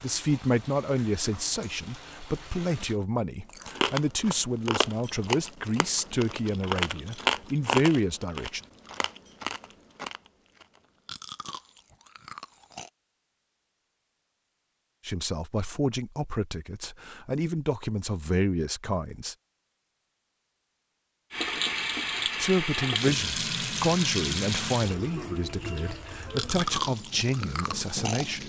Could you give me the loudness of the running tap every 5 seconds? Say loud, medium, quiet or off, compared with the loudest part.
quiet, off, off, off, loud, medium.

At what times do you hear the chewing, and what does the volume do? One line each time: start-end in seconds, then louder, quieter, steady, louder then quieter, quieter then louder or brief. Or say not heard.
3.5-12.9 quieter
25.9-28.4 brief.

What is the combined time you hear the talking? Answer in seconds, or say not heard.
19 s.